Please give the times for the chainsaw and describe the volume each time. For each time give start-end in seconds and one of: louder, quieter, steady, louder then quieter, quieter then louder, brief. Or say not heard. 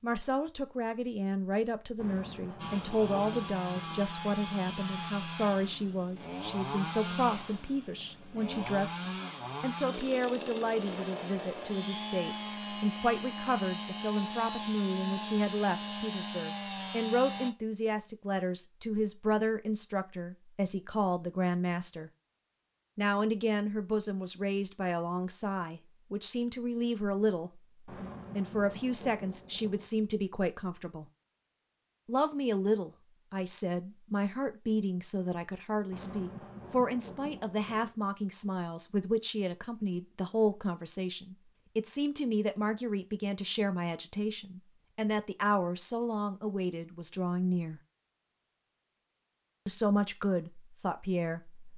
2.5-17.5 steady.